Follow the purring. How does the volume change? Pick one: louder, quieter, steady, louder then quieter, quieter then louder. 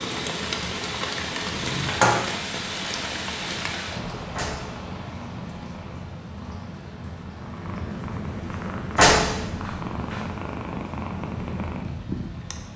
louder.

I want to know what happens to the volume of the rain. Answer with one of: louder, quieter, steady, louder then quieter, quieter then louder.
quieter.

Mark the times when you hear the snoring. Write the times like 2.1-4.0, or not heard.
0.0-1.9.